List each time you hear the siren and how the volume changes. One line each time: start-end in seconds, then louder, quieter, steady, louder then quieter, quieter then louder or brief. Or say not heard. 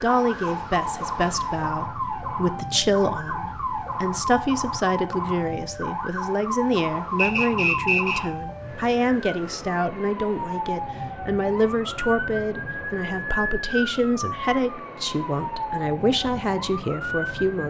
0.0-17.6 steady.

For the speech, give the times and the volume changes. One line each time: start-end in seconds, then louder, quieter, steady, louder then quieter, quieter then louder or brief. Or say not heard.
0.0-17.6 steady.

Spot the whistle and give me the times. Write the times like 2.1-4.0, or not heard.
7.2-8.2.